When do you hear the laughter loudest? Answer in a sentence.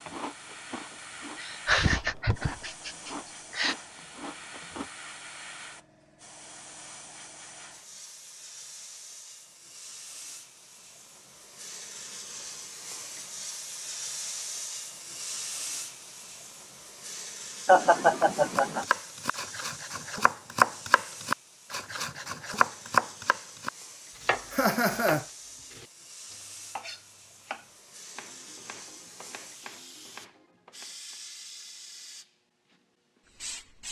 The loudest moment of the laughter is at 18 seconds.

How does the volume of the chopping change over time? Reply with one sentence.
The volume of the chopping goes down.